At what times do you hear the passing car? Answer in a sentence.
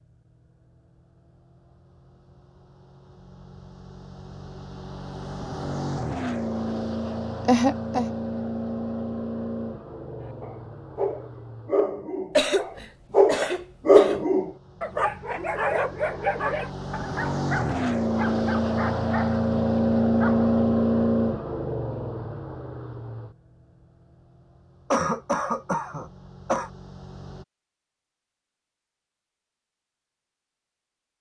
The passing car can be heard from 0.8 to 27.4 s.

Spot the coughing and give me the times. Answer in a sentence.
The coughing can be heard from 7.5 to 8.1 s, from 12.3 to 14.2 s and from 24.9 to 26.7 s.